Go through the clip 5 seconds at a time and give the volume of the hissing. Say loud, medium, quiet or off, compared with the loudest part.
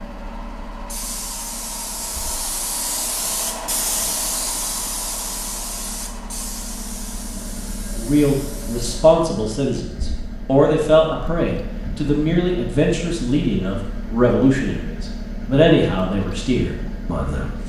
loud, medium, off, off.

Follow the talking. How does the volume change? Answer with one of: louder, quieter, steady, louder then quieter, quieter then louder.
steady.